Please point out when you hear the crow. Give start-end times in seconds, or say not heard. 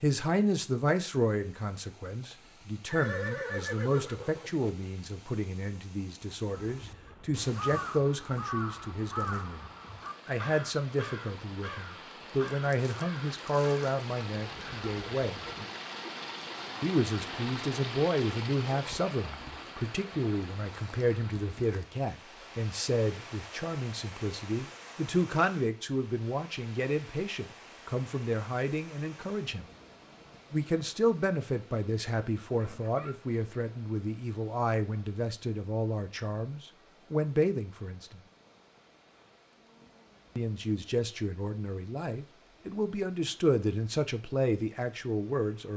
6.5-15.7.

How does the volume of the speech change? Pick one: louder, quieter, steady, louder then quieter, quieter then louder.
steady.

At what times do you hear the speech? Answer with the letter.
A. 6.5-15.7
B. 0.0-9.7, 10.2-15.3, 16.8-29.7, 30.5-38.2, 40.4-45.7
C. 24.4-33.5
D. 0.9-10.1
B.